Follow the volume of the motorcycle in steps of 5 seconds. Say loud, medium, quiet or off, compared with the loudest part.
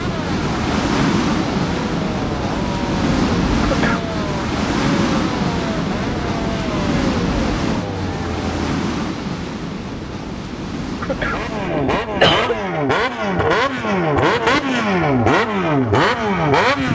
quiet, quiet, loud, loud.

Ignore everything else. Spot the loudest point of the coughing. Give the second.
12 s.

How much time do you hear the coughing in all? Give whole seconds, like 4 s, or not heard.
2 s.